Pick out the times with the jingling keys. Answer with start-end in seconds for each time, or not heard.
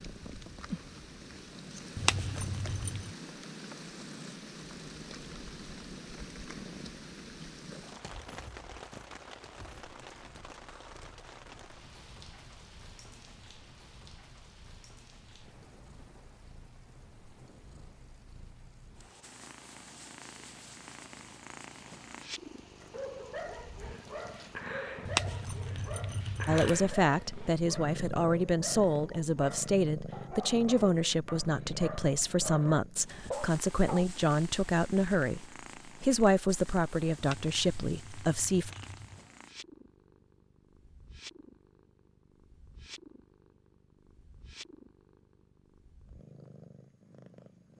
1.9-3.1, 25.1-26.8, 37.2-39.2.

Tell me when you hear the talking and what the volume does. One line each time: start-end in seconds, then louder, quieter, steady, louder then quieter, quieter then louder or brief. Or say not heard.
26.4-38.7 steady.